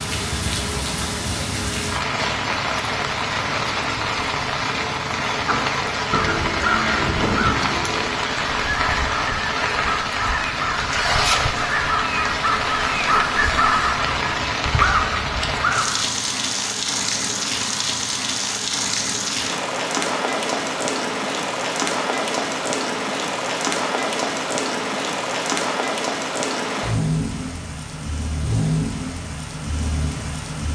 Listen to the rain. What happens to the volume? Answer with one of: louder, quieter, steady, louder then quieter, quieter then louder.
steady.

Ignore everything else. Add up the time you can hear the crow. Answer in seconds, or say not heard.
11 s.